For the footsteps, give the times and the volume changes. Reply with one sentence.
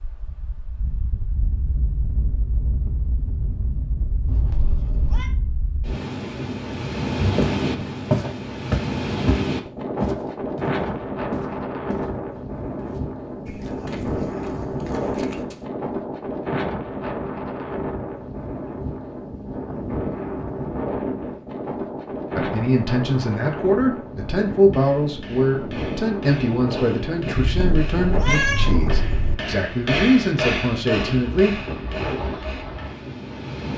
You can hear the footsteps from 6.5 to 12.1 s, getting louder then quieter; and briefly from 12.8 to 15.7 s.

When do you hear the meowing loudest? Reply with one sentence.
The loudest moment of the meowing is at 28 seconds.